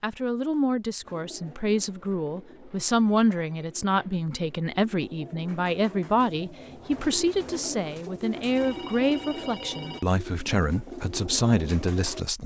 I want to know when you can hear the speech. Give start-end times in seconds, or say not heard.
0.0-12.4.